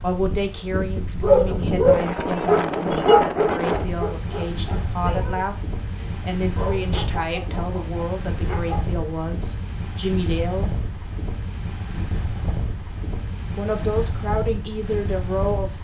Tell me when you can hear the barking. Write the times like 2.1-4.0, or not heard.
1.2-8.8.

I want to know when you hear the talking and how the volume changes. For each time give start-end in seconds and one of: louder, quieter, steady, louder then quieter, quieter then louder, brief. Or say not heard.
0.0-10.8 steady
13.6-15.7 brief.